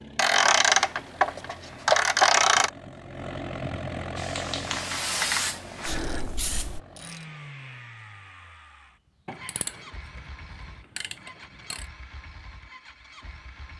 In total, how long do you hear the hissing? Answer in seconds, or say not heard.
3 s.